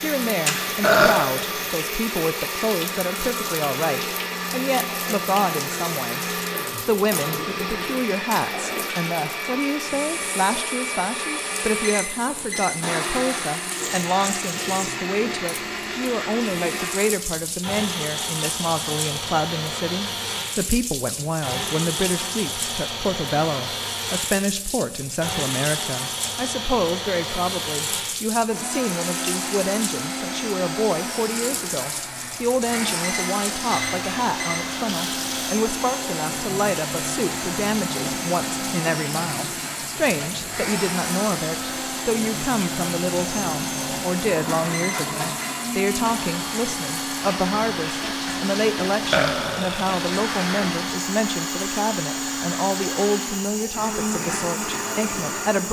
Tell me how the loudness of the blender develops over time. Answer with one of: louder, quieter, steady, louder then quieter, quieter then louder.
steady.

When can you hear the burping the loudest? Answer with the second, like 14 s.
1 s.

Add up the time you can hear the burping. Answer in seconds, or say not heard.
3 s.